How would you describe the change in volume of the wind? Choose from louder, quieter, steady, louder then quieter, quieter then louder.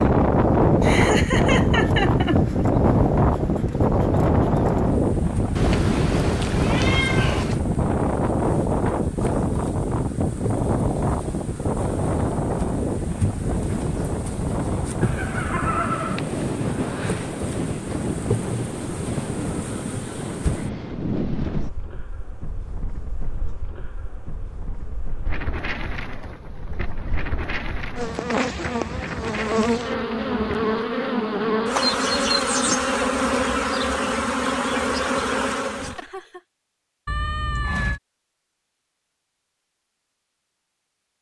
quieter.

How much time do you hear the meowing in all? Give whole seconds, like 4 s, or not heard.
3 s.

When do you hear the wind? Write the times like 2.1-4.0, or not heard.
0.0-30.6.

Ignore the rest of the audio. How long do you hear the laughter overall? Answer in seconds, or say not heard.
4 s.